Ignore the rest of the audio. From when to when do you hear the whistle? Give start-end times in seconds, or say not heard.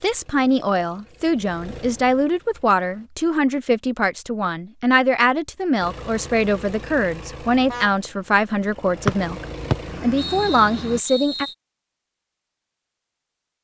9.1-11.6.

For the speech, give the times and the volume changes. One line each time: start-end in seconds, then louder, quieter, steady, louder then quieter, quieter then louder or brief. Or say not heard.
0.0-11.4 steady.